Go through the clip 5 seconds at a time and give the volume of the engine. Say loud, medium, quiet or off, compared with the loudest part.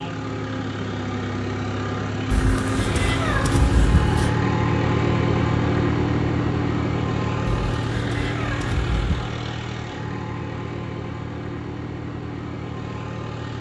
loud, loud, medium.